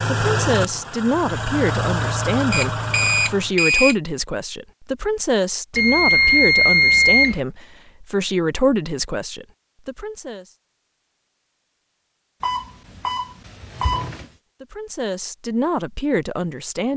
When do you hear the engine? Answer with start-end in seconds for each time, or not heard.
0.0-3.5.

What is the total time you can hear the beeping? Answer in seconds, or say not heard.
5 s.